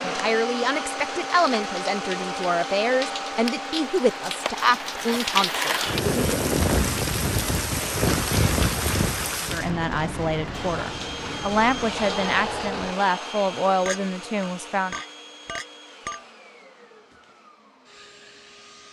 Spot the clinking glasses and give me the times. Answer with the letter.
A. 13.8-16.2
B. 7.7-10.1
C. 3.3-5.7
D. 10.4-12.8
A.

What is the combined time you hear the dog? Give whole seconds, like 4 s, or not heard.
not heard.